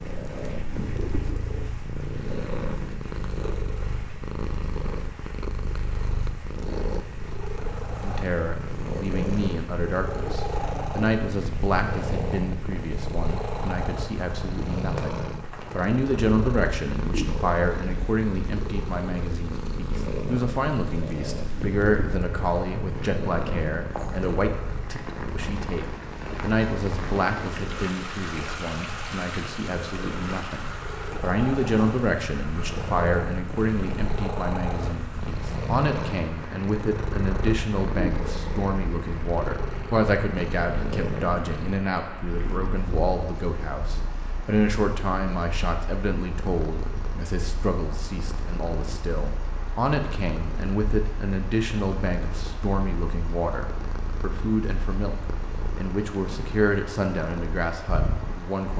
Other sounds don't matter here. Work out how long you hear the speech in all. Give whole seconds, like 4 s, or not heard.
51 s.